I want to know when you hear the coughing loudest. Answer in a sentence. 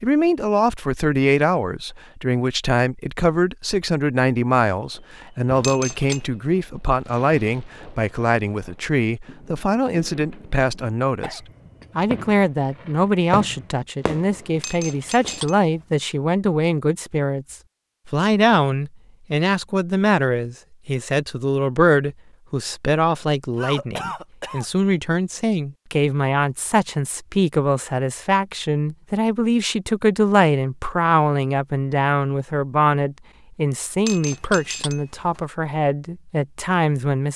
The loudest moment of the coughing is at 24 seconds.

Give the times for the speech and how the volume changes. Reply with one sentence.
You can hear the speech from 0.0 to 37.3 s, at a steady volume.